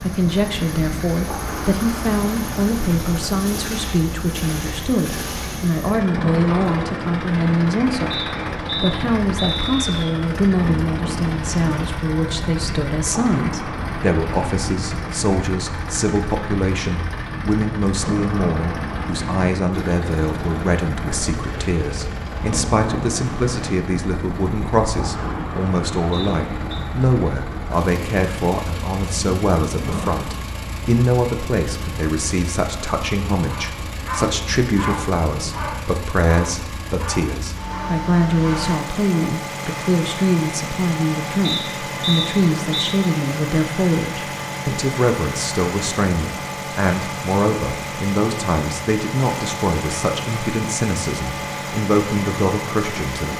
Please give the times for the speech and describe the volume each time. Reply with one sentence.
The speech can be heard from 0.0 to 53.3 s, at a steady volume.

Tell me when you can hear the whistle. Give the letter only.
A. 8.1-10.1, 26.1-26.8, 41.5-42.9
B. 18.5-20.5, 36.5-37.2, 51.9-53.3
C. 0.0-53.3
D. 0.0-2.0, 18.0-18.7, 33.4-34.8
A.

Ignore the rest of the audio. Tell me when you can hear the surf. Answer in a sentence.
The surf can be heard from 0.0 to 30.4 s.